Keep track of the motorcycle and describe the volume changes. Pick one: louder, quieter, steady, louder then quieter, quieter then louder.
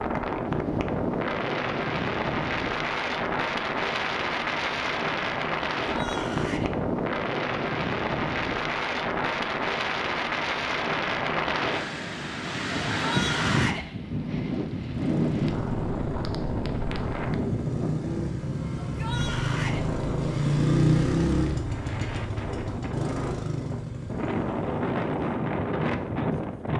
louder then quieter.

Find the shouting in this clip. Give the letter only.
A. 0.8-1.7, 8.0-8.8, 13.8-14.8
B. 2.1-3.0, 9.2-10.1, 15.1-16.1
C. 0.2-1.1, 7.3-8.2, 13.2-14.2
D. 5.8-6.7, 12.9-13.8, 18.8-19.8
D.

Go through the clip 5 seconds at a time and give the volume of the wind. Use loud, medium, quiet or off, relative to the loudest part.
loud, loud, loud, loud, medium, loud.